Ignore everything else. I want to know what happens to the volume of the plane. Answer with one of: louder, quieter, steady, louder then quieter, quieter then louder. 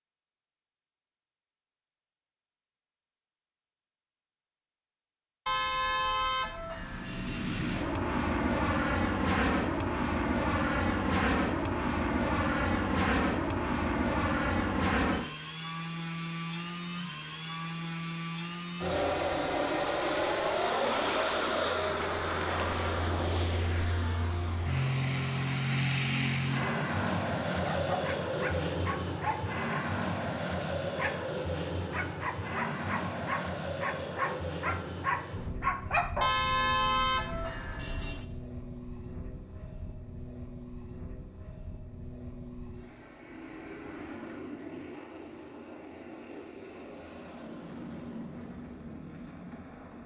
quieter.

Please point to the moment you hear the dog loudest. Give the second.
36 s.